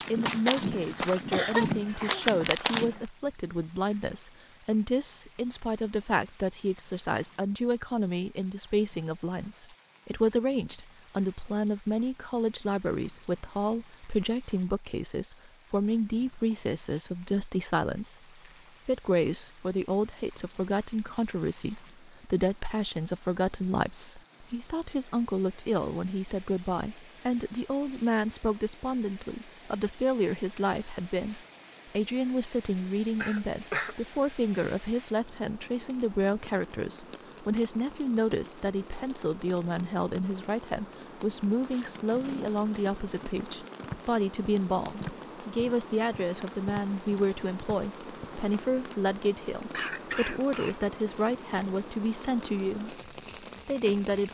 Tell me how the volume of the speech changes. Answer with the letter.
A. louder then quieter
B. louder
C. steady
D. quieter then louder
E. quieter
C.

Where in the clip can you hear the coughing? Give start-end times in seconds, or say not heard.
0.2-2.2, 33.2-34.0, 49.7-50.8.